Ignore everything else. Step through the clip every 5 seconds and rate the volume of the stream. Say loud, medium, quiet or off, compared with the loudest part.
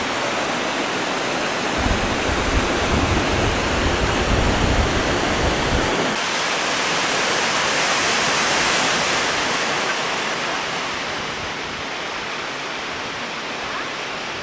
loud, loud, medium.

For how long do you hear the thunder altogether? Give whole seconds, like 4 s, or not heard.
4 s.